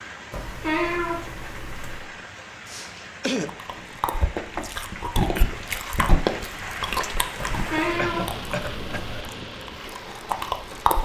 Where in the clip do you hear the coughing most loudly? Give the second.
3 s.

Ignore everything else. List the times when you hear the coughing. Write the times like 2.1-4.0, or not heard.
2.6-3.5, 8.0-9.2.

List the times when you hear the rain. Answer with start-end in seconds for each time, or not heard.
0.0-11.0.